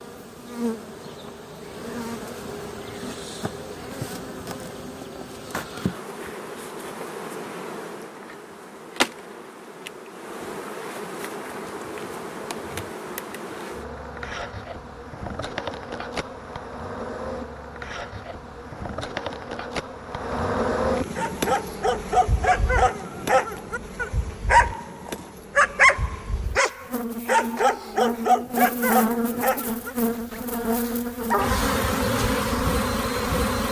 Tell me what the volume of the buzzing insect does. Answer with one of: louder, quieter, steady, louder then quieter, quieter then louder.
louder.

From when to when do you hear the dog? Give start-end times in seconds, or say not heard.
21.1-31.6.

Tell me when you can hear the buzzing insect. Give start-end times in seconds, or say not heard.
0.0-33.6.